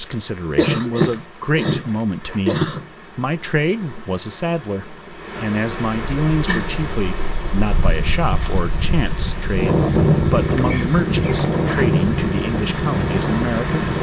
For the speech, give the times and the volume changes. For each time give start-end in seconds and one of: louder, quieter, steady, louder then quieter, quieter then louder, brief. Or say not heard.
0.0-13.8 steady.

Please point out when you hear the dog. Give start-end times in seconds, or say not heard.
not heard.